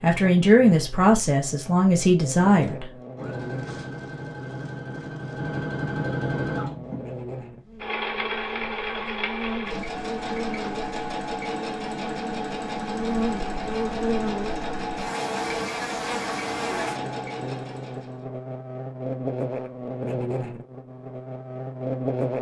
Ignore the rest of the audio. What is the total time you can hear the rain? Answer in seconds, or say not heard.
not heard.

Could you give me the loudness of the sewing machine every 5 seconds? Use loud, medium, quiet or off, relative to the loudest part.
medium, loud, loud, loud, off.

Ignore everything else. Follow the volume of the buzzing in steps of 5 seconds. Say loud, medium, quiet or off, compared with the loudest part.
medium, medium, loud, loud, loud.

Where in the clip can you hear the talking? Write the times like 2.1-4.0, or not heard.
0.0-2.9.